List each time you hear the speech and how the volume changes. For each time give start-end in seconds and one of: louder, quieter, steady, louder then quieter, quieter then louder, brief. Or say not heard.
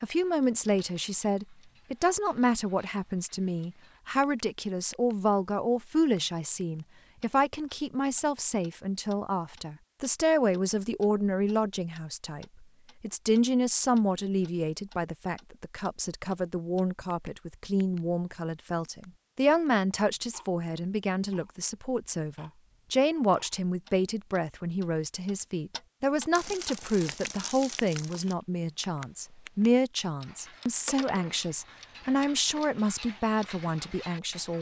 0.0-34.5 steady.